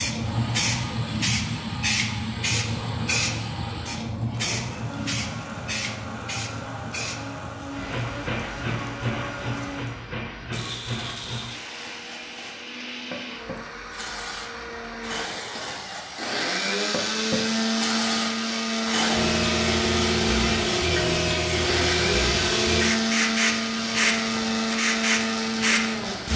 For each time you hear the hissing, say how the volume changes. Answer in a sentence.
You can hear the hissing from 0.0 to 26.3 s, getting quieter then louder.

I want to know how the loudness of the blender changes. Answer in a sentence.
The volume of the blender goes up.